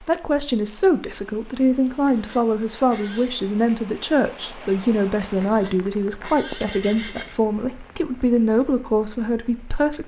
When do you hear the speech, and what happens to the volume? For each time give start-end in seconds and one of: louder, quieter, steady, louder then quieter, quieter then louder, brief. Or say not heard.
0.0-10.0 steady.